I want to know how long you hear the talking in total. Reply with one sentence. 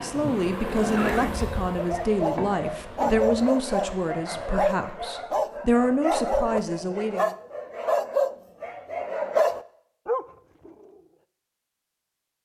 The talking can be heard for 7 seconds in total.